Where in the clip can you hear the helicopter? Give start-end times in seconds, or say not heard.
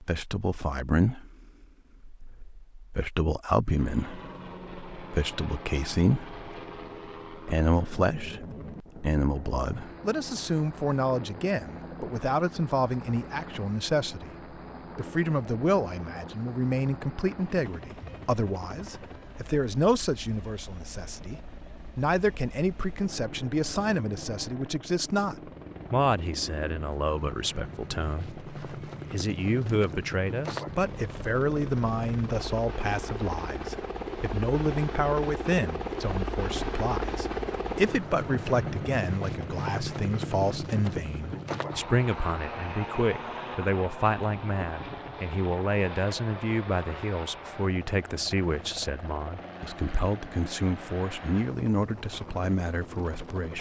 3.8-53.5.